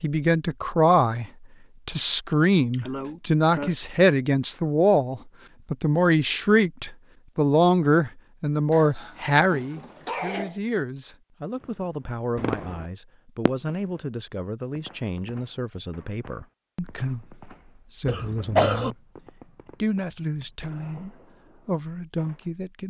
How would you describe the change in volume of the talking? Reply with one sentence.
The volume of the talking goes down.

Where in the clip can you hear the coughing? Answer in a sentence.
You can hear the coughing from 2.3 to 3.8 s, from 8.7 to 10.6 s and from 18.1 to 18.9 s.